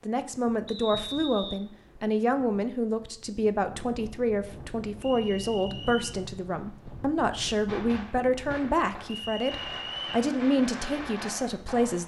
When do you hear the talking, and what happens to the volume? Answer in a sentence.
You can hear the talking from 0.0 to 12.0 s, at a steady volume.